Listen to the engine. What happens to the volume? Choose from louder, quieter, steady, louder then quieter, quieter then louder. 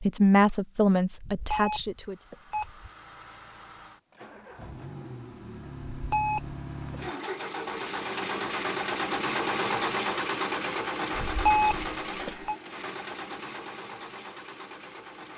louder then quieter.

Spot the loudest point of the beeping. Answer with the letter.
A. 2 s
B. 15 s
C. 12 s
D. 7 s
C.